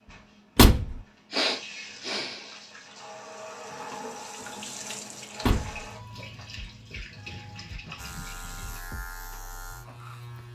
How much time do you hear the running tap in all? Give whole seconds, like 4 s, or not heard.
9 s.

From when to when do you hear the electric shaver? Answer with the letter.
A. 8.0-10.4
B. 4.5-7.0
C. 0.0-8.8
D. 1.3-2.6
A.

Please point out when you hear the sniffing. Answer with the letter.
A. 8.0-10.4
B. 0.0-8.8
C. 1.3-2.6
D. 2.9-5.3
C.